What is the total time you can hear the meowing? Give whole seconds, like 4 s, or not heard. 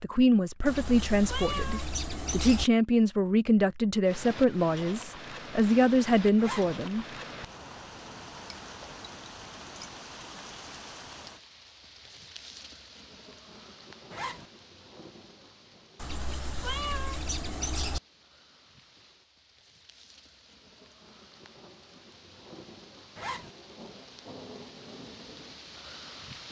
4 s.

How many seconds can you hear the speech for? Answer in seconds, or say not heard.
7 s.